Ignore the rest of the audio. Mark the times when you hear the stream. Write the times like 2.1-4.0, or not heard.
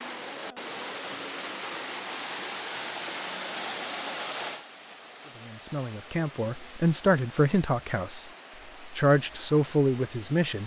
0.0-10.6.